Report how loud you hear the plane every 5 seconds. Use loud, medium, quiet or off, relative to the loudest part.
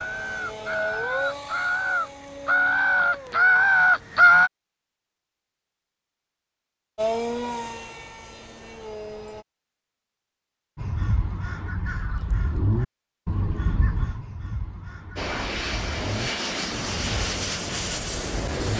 medium, loud, off, loud.